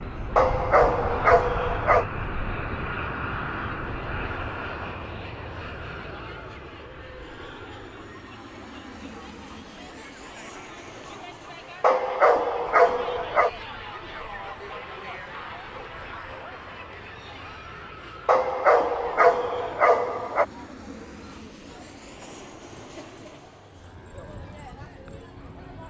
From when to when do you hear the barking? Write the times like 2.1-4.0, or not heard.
0.3-2.0, 11.8-13.5, 18.2-20.4.